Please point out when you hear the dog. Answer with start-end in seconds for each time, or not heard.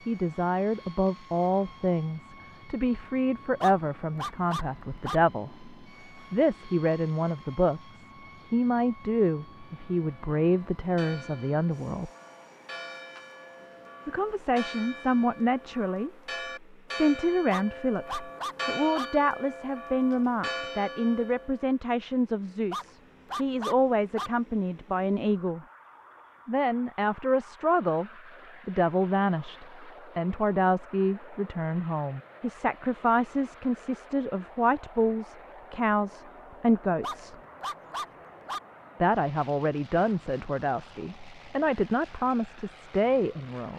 3.6-5.2, 17.5-19.1, 22.7-24.3, 37.0-38.6.